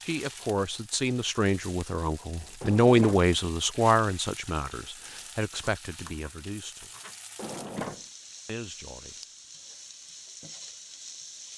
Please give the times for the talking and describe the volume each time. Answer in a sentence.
You can hear the talking from 0.0 to 6.9 s, getting louder then quieter; and briefly from 8.4 to 9.2 s.